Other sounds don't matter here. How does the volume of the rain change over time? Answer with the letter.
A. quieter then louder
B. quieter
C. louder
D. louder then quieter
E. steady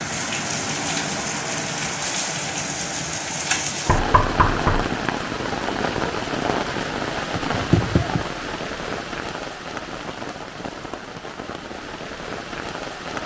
B.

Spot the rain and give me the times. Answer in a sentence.
You can hear the rain from 0.0 to 13.2 s.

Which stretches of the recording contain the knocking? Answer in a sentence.
The knocking can be heard from 3.9 to 4.9 s and from 7.3 to 8.2 s.